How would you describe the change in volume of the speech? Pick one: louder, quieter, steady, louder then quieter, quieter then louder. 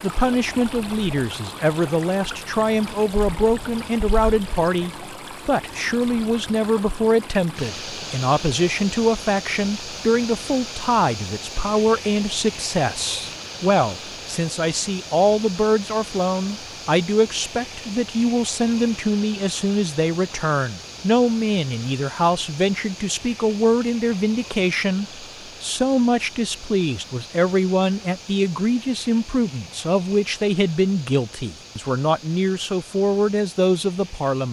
steady.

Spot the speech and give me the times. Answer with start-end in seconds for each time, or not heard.
0.0-34.4.